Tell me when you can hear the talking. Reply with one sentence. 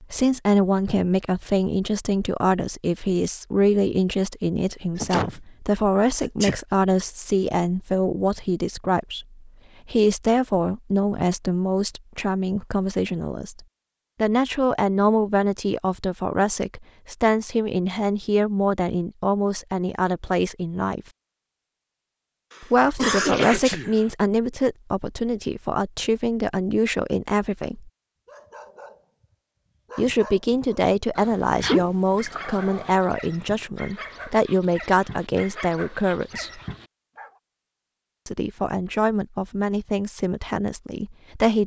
The talking can be heard from 0.0 to 21.0 s, from 22.6 to 27.9 s, from 29.9 to 36.6 s and from 38.2 to 41.6 s.